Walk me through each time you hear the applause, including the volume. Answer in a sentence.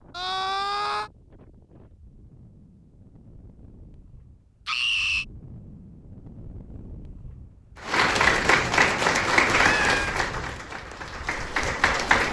You can hear the applause from 7.8 to 12.2 s, getting quieter then louder.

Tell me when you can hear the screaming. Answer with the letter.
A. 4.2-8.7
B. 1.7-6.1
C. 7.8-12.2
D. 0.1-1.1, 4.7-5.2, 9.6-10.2
D.